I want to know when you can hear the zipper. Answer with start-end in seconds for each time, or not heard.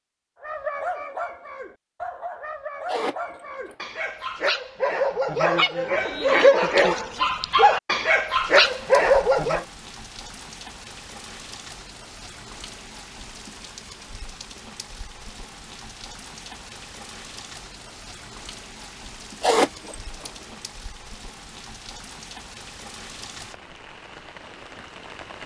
2.9-3.8, 19.4-20.3.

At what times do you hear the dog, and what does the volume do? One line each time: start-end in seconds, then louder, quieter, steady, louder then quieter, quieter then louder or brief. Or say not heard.
0.4-9.7 louder.